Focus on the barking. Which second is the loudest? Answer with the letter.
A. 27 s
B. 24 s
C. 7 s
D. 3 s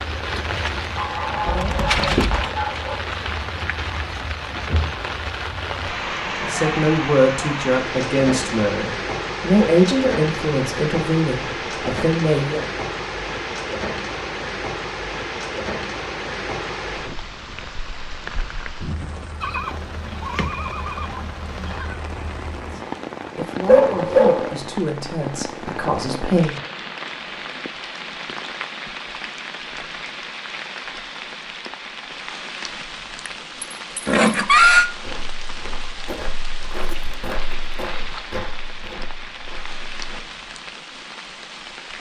B.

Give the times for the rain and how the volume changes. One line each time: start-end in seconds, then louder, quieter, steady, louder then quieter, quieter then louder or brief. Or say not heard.
0.0-41.9 quieter.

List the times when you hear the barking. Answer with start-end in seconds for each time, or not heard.
0.9-3.0, 23.6-24.6.